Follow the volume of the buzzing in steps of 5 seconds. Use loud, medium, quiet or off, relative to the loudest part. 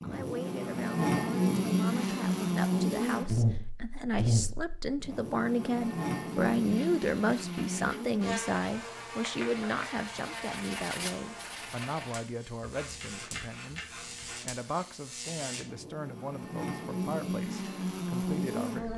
loud, medium, quiet, medium.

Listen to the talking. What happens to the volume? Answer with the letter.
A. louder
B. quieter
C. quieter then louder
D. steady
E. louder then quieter
E.